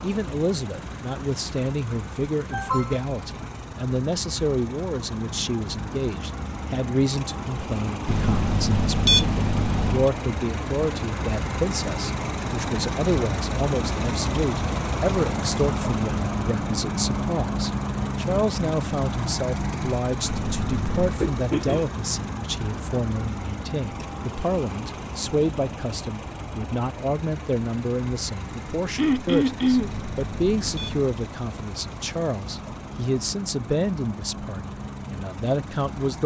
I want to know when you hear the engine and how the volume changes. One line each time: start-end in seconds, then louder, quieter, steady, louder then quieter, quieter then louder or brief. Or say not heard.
0.0-36.2 louder then quieter.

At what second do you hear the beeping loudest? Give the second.
9 s.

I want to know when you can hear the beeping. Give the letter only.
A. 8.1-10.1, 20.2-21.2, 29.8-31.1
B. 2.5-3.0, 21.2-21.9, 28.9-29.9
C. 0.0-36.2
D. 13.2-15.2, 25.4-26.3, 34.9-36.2
A.